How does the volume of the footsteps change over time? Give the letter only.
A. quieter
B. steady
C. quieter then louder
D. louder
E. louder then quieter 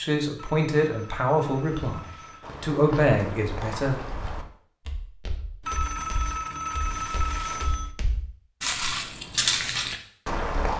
C.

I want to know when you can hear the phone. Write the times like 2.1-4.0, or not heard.
0.3-2.5, 5.6-8.0.